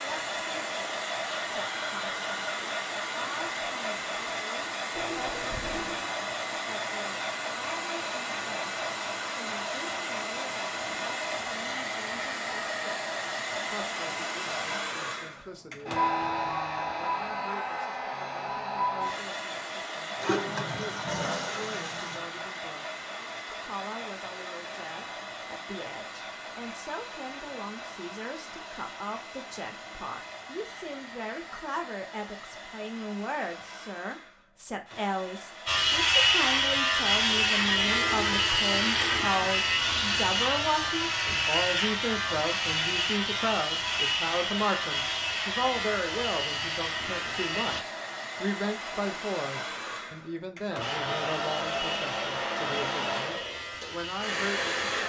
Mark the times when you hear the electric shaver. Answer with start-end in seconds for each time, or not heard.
35.6-47.8, 50.8-55.0.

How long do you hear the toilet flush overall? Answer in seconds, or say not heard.
5 s.